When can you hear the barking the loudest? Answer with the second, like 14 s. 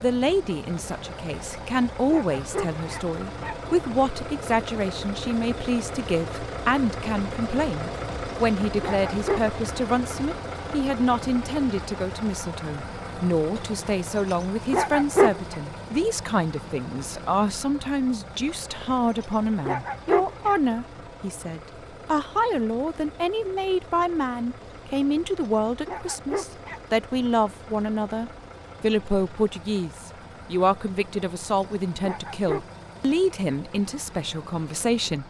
15 s.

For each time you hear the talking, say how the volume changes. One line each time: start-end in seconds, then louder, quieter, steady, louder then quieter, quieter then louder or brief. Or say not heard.
0.0-35.2 steady.